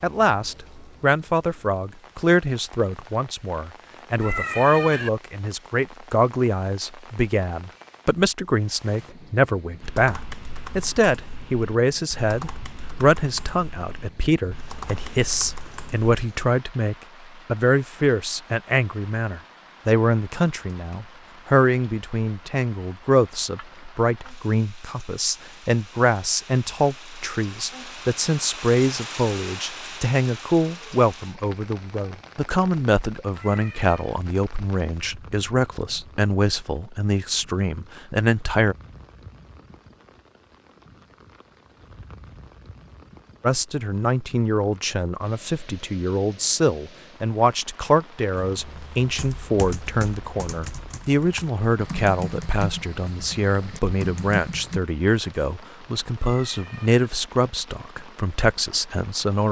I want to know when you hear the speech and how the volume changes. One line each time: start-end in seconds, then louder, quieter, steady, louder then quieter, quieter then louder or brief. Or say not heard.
0.0-38.8 steady
43.4-59.4 steady.